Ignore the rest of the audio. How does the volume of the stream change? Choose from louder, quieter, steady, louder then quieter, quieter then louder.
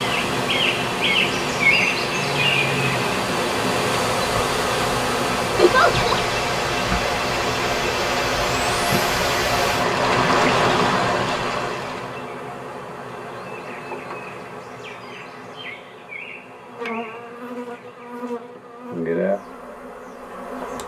louder.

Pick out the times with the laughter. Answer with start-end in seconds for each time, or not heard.
5.5-6.2.